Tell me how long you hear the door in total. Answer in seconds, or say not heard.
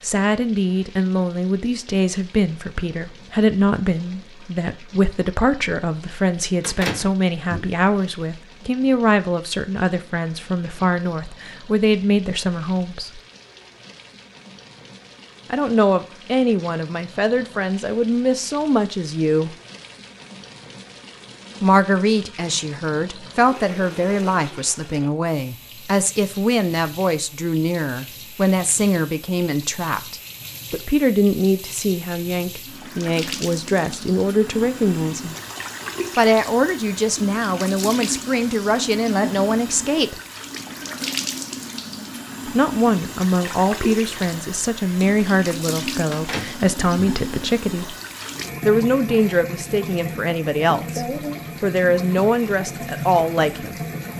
2 s.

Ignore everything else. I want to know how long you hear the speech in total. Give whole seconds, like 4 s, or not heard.
46 s.